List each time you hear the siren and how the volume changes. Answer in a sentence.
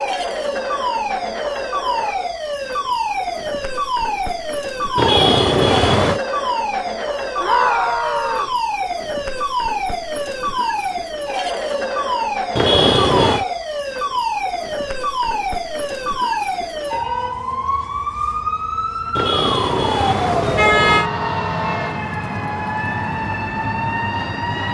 The siren can be heard from 0.0 to 24.7 s, at a steady volume.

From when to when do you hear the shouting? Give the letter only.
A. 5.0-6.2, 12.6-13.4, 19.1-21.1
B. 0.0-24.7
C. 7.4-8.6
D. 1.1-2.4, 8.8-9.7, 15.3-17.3
C.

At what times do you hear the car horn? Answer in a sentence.
The car horn can be heard from 5.0 to 6.2 s, from 12.6 to 13.4 s and from 19.1 to 21.1 s.